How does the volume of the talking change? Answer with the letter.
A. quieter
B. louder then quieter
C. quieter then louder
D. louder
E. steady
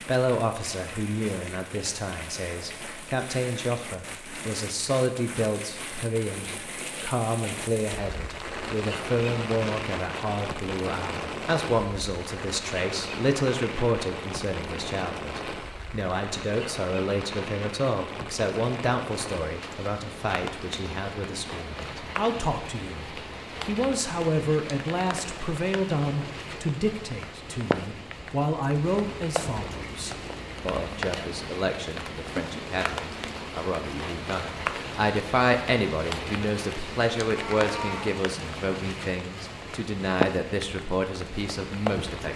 E.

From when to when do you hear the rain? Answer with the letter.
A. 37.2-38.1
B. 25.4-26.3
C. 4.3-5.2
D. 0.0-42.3
D.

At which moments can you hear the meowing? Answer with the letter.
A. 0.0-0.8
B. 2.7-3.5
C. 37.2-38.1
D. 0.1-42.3
C.